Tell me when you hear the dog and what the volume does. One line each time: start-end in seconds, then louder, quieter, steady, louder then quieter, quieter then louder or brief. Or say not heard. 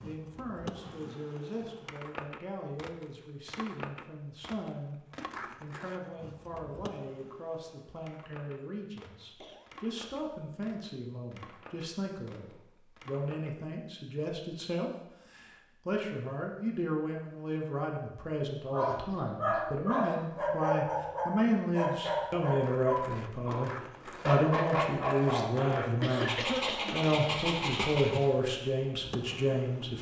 18.7-28.2 steady.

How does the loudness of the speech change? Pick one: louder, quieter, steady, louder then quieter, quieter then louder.
louder.